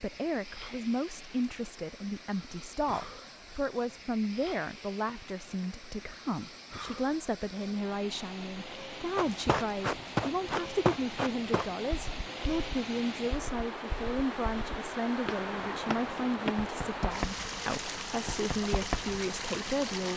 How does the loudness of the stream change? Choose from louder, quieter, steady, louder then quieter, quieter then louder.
louder.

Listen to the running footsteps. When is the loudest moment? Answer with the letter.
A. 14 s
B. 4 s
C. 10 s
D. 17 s
C.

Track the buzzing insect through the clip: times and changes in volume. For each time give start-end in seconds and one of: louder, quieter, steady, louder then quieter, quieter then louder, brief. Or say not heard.
not heard.